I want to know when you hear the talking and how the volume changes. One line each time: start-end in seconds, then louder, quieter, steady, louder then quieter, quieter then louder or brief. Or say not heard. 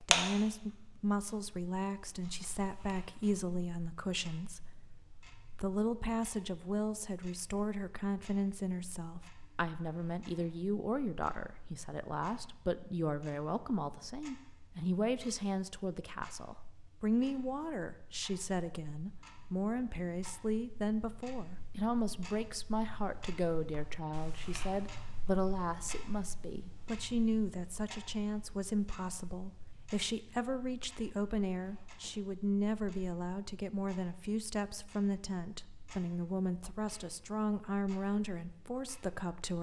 0.0-39.5 steady.